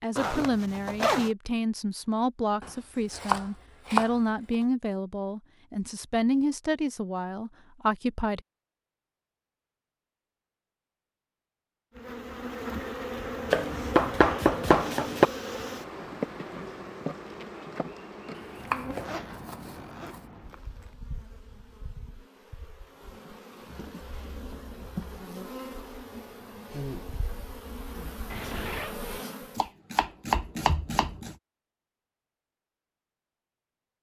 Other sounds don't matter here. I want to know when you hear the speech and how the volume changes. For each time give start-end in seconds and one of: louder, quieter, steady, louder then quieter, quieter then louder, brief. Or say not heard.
0.0-8.4 steady.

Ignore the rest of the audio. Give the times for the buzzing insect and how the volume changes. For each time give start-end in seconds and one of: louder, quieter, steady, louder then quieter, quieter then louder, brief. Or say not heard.
11.9-29.7 quieter then louder.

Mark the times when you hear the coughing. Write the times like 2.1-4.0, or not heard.
not heard.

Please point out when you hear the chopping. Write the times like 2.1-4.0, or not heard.
2.6-4.1, 13.5-15.3, 18.4-20.2, 29.6-31.4.